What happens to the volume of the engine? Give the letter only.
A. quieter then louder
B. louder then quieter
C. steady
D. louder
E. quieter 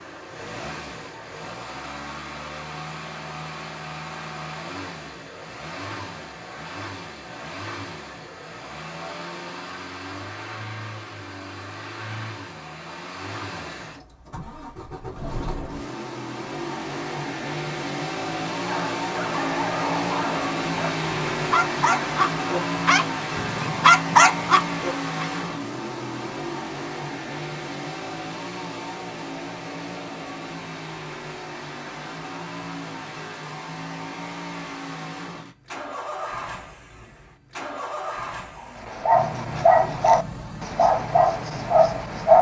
B.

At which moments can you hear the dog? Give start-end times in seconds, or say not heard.
18.6-25.2, 38.8-42.3.